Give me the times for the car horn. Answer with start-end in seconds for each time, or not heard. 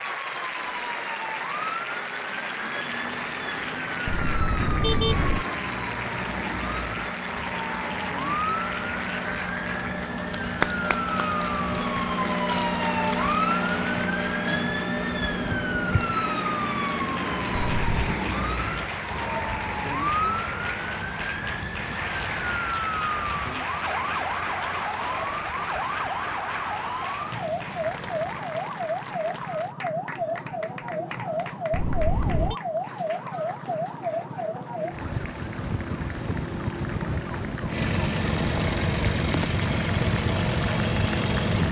4.0-5.5, 17.6-18.1, 31.7-32.5.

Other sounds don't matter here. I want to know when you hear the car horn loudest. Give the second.
5 s.